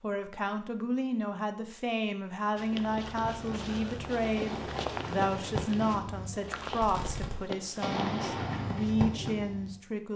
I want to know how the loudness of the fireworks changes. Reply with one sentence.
The loudness of the fireworks goes up.